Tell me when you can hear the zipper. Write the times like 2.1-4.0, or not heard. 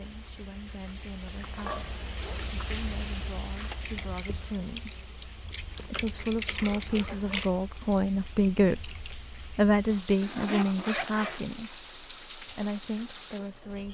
1.5-2.5, 5.8-7.5, 10.2-11.6.